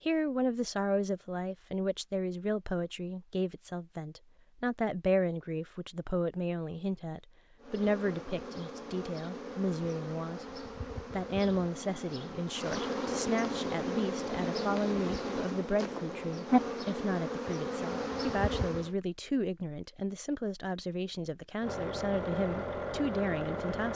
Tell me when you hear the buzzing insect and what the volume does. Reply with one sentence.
You can hear the buzzing insect from 7.6 to 18.9 s, getting louder.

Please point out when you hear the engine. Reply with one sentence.
You can hear the engine from 21.6 to 23.9 s.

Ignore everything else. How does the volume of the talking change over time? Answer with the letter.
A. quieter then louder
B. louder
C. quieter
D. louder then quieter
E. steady
E.